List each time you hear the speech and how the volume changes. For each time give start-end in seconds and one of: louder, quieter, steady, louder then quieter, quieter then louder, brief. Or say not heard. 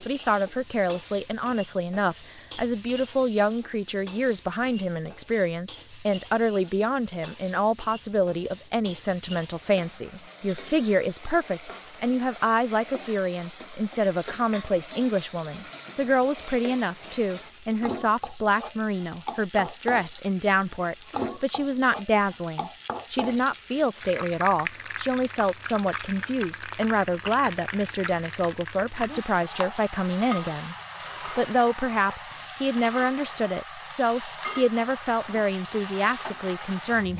0.0-37.1 steady.